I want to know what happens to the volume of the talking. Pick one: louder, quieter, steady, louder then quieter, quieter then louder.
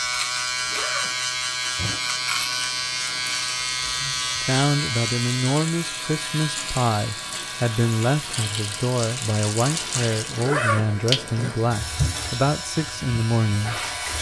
steady.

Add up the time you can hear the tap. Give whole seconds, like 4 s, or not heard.
14 s.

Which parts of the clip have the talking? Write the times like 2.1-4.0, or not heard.
4.3-14.1.